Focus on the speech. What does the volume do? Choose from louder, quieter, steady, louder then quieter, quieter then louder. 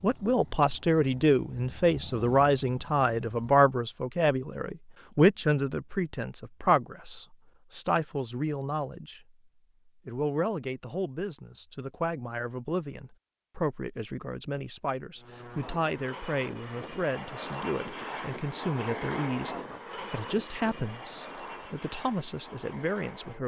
quieter.